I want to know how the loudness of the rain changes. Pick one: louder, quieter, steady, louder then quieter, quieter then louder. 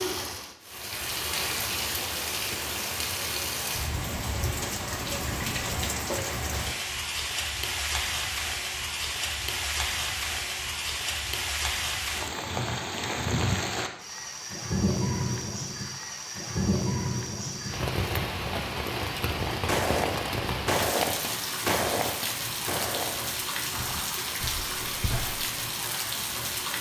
steady.